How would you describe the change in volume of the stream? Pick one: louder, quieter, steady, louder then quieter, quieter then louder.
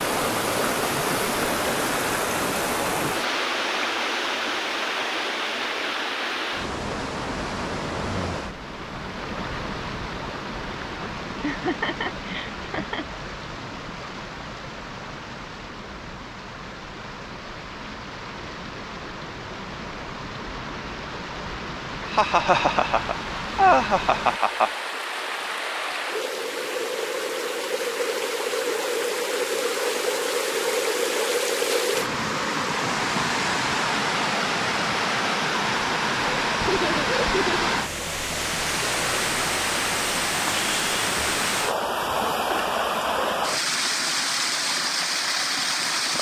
quieter then louder.